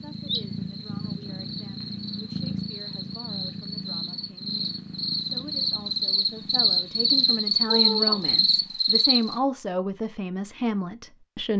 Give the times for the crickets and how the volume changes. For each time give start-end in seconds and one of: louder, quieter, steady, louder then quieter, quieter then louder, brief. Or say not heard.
0.0-9.4 louder.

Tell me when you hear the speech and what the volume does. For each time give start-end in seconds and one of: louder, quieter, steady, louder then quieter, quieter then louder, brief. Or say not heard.
0.0-11.5 louder.